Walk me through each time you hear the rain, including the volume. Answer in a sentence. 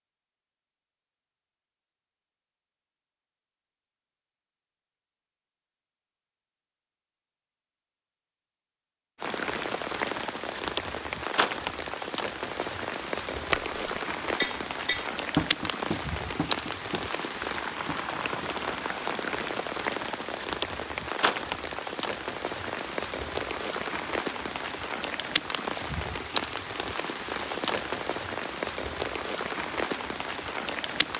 You can hear the rain from 9.2 to 31.1 s, at a steady volume.